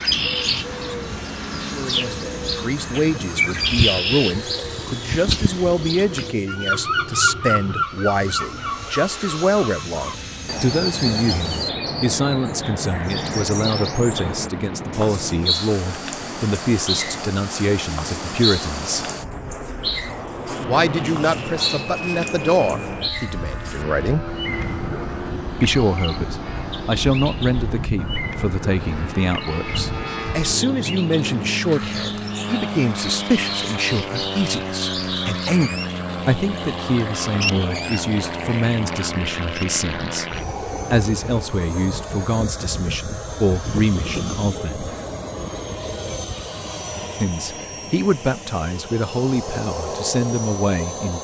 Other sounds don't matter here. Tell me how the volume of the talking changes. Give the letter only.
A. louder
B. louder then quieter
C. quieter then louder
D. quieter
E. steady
E.